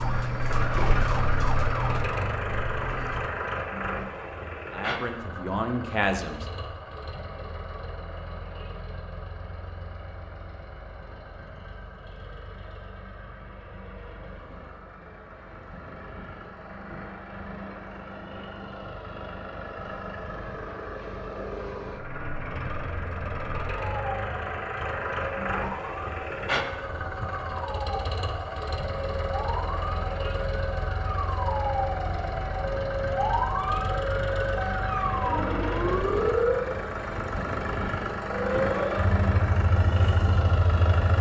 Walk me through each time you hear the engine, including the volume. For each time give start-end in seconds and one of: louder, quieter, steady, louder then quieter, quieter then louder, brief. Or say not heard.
0.0-41.1 quieter then louder.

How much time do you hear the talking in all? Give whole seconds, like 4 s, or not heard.
2 s.